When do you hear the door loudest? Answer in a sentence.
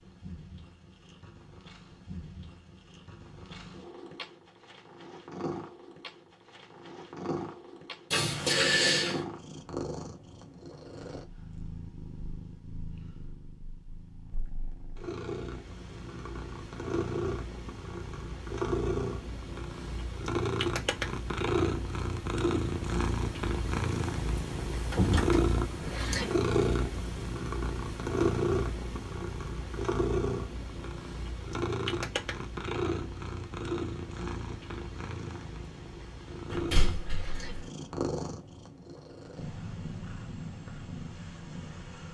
The loudest moment of the door is at 9 seconds.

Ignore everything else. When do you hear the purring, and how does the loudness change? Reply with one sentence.
You can hear the purring from 0.0 to 42.0 s, getting louder then quieter.